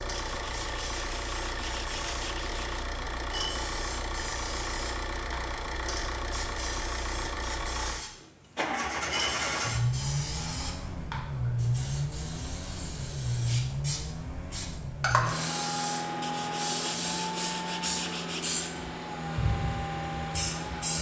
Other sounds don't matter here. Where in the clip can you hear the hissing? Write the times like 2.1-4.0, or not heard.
0.0-20.9.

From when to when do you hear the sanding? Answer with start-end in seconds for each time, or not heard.
0.1-2.8, 16.2-18.7.